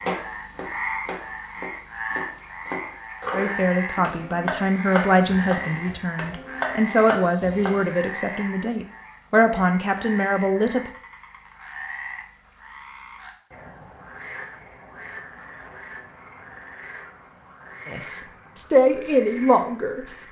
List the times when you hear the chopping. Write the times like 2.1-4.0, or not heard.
0.0-7.8.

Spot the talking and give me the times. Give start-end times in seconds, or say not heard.
3.3-10.9, 17.9-20.1.